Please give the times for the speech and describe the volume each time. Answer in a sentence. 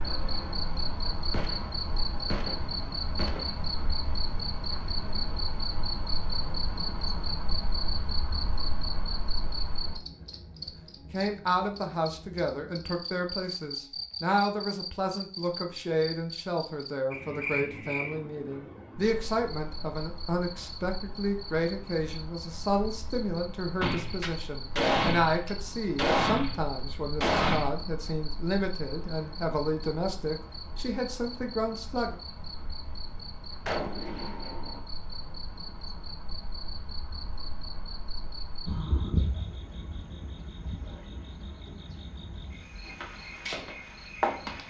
The speech can be heard from 10.7 to 32.1 s, at a steady volume.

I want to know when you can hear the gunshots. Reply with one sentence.
The gunshots can be heard from 1.3 to 3.6 s, from 23.8 to 27.7 s and from 33.6 to 34.8 s.